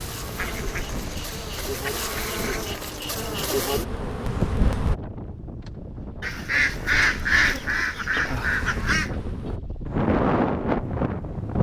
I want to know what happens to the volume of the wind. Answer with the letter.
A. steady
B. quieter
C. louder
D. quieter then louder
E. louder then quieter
C.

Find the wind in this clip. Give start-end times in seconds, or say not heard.
0.0-11.5.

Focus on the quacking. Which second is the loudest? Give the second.
7 s.